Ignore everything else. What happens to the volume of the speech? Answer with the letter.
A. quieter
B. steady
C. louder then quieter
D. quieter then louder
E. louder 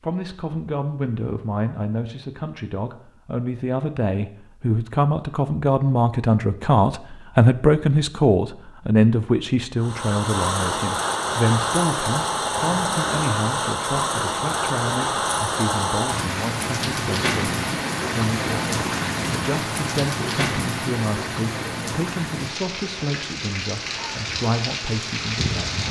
C.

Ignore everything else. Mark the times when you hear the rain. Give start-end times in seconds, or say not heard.
9.8-25.8.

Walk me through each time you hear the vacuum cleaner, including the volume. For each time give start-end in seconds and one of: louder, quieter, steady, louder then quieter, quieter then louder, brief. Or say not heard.
not heard.